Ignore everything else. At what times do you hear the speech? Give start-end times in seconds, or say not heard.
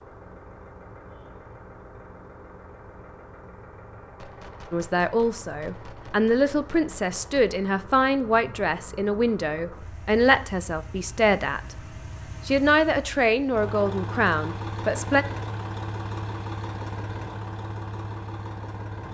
4.7-11.6, 12.4-15.2.